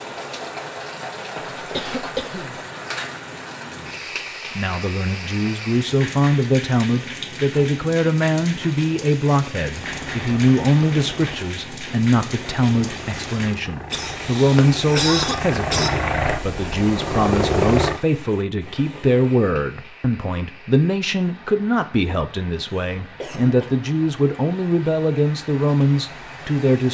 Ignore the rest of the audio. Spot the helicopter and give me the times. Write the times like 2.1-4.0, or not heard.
9.8-18.0.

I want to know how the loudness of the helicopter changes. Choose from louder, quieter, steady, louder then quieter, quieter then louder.
louder.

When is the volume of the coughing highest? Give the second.
15 s.